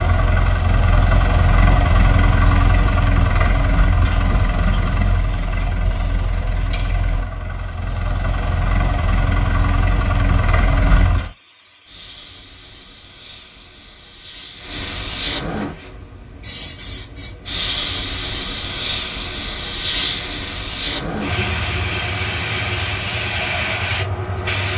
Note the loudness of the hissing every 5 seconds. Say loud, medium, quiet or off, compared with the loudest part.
quiet, quiet, quiet, loud, loud.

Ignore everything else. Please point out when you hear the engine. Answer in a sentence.
You can hear the engine from 0.0 to 11.3 s.